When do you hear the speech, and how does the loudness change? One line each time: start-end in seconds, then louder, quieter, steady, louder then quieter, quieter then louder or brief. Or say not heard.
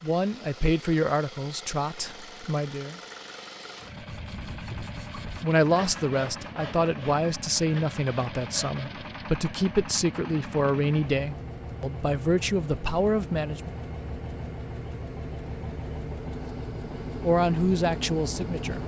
0.0-3.0 brief
5.4-13.8 steady
17.2-18.8 brief.